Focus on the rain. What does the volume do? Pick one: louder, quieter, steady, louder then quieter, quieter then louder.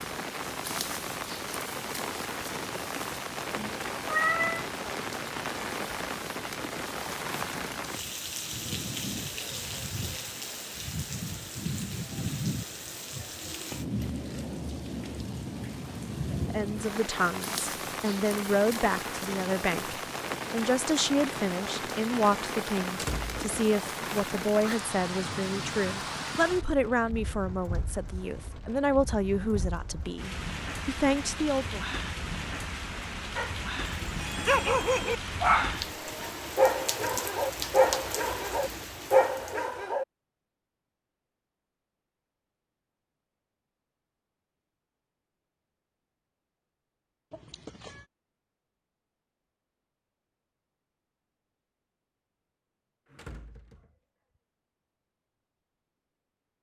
steady.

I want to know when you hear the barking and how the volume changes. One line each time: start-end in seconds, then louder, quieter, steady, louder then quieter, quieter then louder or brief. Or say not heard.
33.4-40.0 steady.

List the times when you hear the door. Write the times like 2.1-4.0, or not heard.
22.9-23.5, 53.0-54.0.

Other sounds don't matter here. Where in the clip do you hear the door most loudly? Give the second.
23 s.